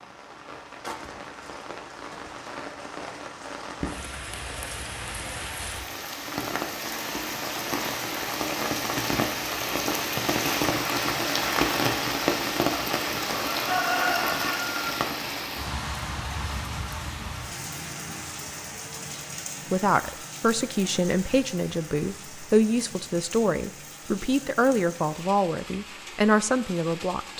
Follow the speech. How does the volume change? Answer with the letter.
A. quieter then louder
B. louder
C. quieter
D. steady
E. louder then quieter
D.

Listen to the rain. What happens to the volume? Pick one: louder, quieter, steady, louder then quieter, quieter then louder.
louder then quieter.